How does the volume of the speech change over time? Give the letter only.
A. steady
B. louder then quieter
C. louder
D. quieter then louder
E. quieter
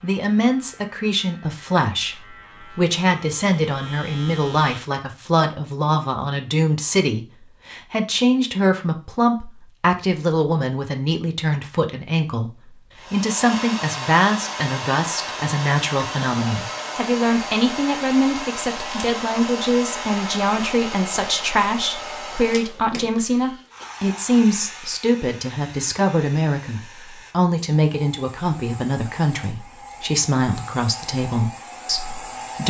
A.